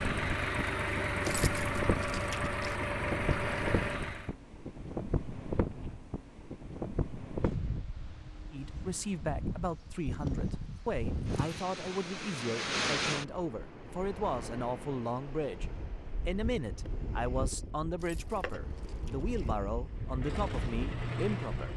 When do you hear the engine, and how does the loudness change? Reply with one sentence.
The engine can be heard from 0.0 to 4.3 s, at a steady volume; and briefly from 19.9 to 21.7 s.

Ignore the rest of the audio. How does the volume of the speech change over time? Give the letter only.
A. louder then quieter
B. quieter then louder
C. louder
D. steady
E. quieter
D.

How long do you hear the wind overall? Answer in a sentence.
The wind can be heard for 22 seconds in total.